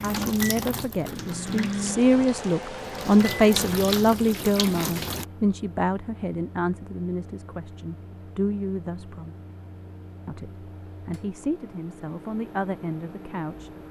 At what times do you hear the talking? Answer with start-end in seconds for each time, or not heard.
0.0-9.3, 10.2-13.7.